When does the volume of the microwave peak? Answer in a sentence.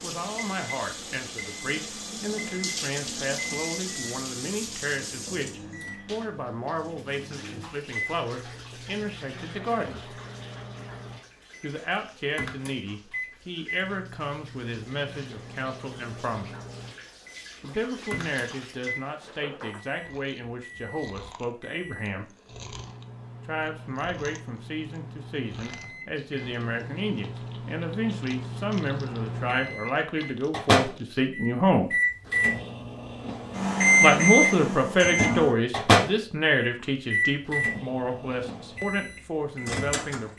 The volume of the microwave peaks at 34 seconds.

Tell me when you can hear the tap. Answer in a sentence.
The tap can be heard from 0.0 to 19.9 s.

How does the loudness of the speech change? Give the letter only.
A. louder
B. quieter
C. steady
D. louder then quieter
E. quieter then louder
A.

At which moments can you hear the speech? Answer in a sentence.
The speech can be heard from 0.0 to 10.2 s, from 11.6 to 16.6 s, from 17.6 to 22.2 s, from 23.4 to 31.9 s and from 34.0 to 40.3 s.